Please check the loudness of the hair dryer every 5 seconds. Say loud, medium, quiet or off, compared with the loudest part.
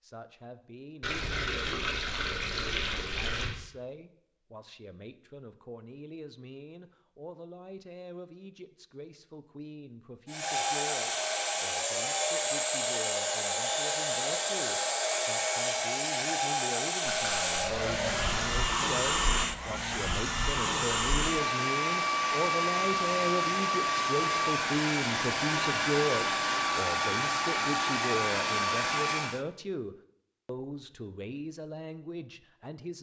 off, off, loud, loud, loud, loud, off.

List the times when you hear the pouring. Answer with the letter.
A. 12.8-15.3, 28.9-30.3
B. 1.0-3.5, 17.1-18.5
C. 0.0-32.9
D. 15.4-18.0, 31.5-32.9
B.